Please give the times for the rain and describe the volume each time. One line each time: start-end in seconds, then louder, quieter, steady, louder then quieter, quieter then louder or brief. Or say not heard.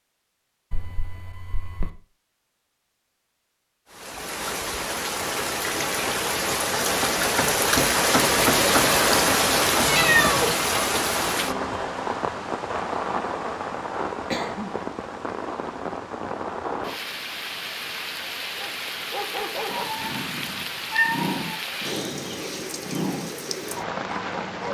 3.9-24.6 quieter.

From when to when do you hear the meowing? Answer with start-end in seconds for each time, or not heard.
0.7-1.9, 9.8-10.6, 19.6-21.6.